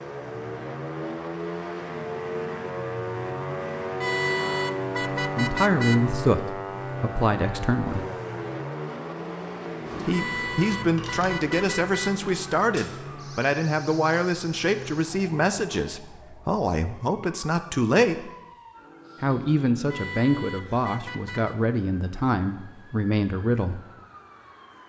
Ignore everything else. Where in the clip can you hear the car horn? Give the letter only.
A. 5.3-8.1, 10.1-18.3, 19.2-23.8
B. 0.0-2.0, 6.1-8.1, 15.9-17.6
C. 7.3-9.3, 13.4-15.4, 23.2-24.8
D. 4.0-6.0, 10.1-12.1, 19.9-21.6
D.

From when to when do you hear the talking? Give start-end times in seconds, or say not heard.
5.3-8.1, 10.1-18.3, 19.2-23.8.